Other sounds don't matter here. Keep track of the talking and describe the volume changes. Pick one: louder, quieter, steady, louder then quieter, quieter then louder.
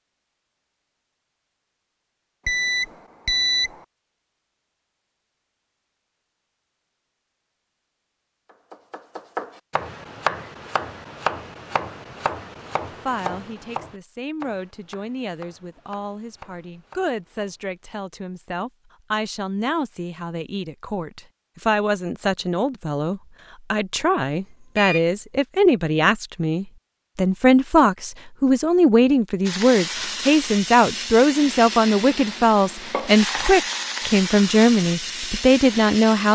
louder.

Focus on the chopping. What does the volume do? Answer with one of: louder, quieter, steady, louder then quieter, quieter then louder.
quieter.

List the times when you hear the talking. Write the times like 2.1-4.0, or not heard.
13.0-36.2.